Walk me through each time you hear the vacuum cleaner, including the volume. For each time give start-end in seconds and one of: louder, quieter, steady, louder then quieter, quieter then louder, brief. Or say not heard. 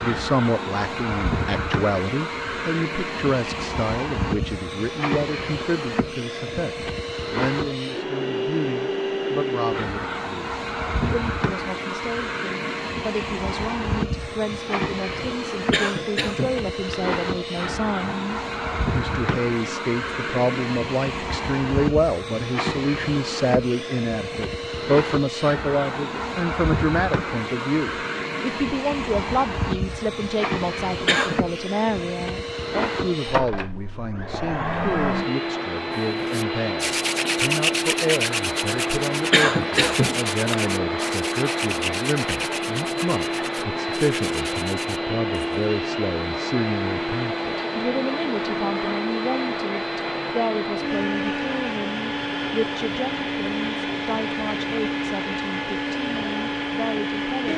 0.0-57.5 steady.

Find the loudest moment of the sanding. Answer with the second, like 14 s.
38 s.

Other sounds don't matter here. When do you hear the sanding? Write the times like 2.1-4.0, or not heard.
36.2-45.6.